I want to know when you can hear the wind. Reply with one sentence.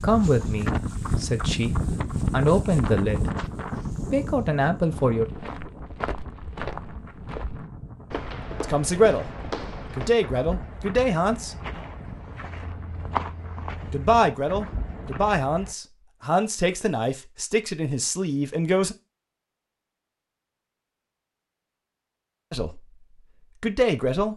The wind can be heard from 0.0 to 15.3 s.